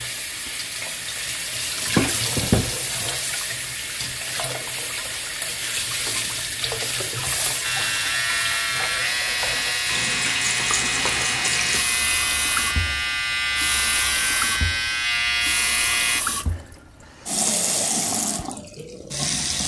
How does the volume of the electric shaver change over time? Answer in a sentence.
The volume of the electric shaver stays about the same.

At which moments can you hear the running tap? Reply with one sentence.
The running tap can be heard from 0.0 to 19.6 s.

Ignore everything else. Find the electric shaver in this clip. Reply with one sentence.
The electric shaver can be heard from 7.6 to 16.2 s.